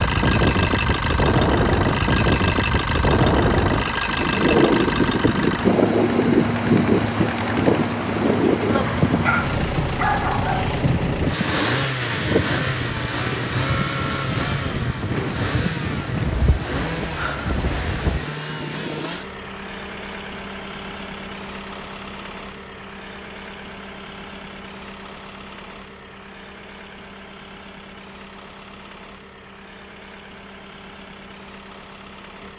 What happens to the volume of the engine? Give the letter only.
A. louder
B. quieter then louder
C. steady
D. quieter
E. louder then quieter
D.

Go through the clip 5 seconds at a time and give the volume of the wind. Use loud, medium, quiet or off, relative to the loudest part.
loud, loud, medium, medium, off, off, off.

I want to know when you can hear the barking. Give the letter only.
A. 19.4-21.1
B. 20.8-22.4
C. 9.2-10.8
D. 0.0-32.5
C.